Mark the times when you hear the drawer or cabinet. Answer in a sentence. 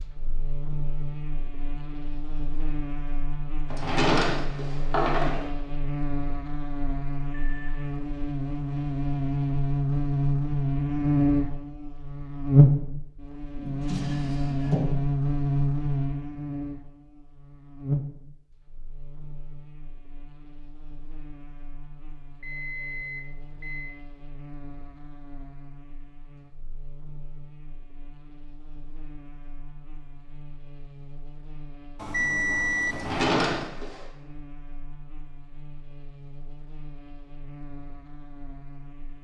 You can hear the drawer or cabinet from 3.7 to 5.5 s, from 13.6 to 14.9 s and from 32.9 to 34.0 s.